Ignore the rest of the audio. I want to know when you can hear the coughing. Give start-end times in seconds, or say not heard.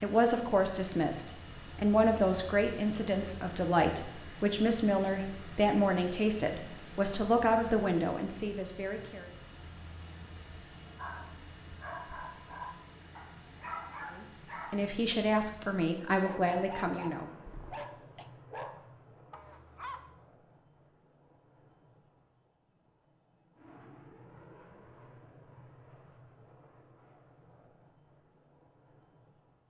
17.4-18.3.